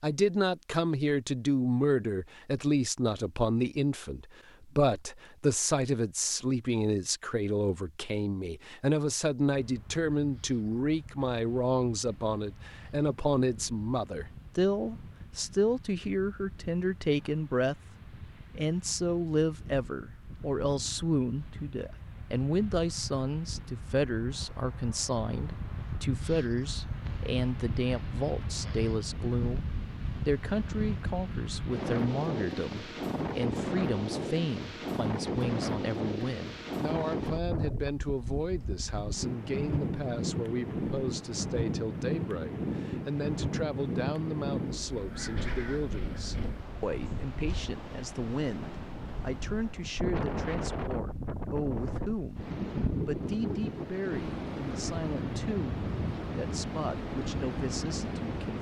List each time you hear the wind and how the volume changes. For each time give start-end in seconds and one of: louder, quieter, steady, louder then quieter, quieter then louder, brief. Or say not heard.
9.6-58.5 louder.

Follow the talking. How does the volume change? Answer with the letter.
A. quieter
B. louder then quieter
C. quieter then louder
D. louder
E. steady
A.